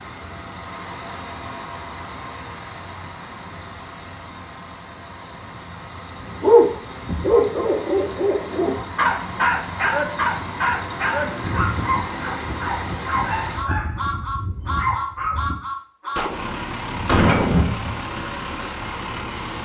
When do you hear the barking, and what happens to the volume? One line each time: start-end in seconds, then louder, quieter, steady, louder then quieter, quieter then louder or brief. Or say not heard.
6.2-15.6 quieter.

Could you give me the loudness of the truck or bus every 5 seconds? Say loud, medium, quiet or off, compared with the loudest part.
medium, medium, loud, loud.